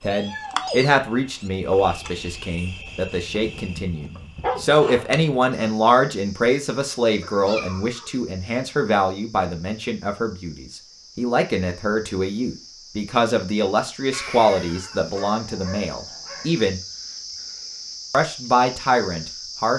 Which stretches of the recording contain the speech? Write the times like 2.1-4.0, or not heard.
0.0-16.8, 18.1-19.7.